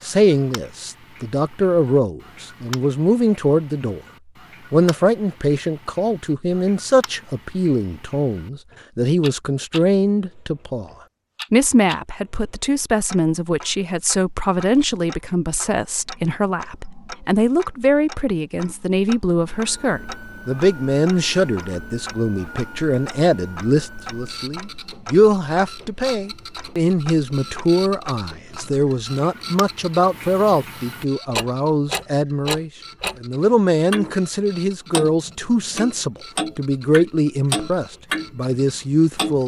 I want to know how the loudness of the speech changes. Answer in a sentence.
The volume of the speech stays about the same.